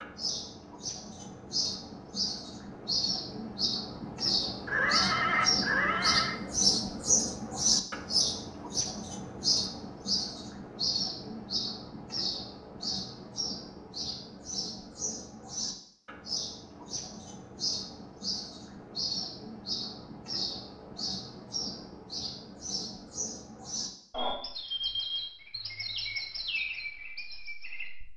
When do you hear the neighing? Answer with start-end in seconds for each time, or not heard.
4.7-6.4.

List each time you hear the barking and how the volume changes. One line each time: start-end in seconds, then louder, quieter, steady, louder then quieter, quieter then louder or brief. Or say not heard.
not heard.